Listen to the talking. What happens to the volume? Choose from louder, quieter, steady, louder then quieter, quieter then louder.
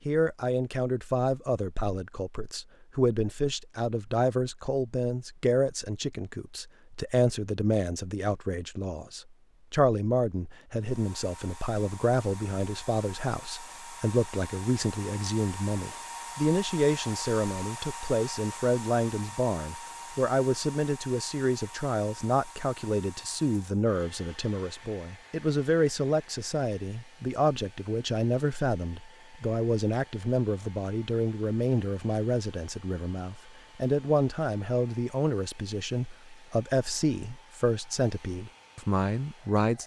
steady.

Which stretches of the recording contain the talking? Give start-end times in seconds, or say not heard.
0.1-39.8.